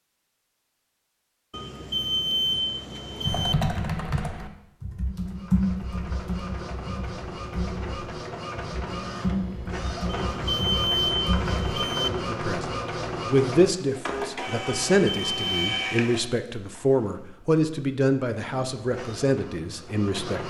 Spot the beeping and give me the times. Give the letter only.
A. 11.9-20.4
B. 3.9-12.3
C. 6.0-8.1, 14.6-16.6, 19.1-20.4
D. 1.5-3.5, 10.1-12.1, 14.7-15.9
D.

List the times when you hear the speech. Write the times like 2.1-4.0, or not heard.
11.9-20.4.